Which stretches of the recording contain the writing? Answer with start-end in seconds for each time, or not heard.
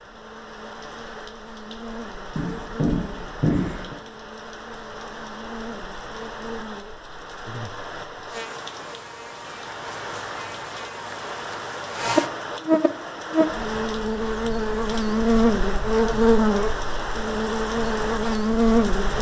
2.4-4.0.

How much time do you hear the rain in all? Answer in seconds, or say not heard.
19 s.